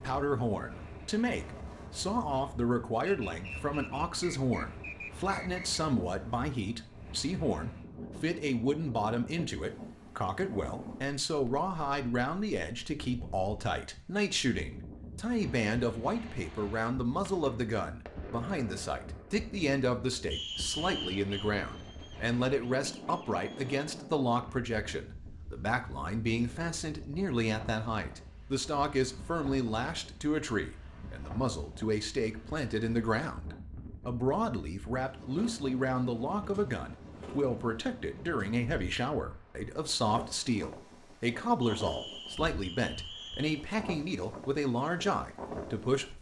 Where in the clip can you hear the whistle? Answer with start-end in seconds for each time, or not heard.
3.0-5.8, 20.3-21.6, 41.6-43.6.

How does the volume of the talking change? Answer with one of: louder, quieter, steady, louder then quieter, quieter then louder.
steady.